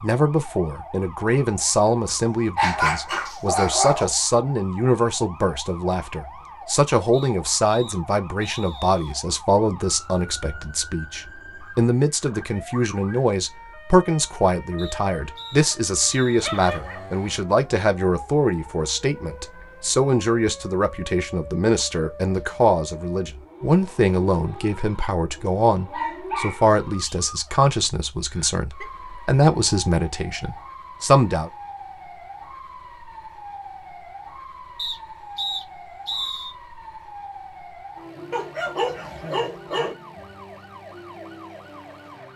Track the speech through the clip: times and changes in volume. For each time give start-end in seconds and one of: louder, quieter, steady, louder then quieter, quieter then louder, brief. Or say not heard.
0.0-31.5 steady.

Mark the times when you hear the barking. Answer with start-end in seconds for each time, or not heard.
2.0-4.0, 16.4-17.1, 25.9-27.1, 38.3-40.0.